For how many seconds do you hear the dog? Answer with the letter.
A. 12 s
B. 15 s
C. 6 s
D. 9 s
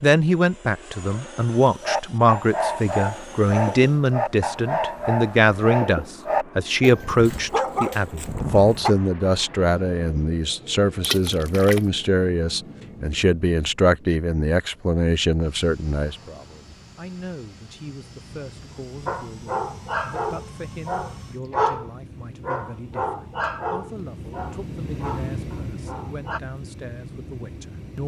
B.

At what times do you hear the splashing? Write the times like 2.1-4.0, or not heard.
11.0-11.9.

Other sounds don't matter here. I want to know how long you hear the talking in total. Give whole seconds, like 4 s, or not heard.
28 s.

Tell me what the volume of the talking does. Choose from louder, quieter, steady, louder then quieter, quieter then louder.
quieter.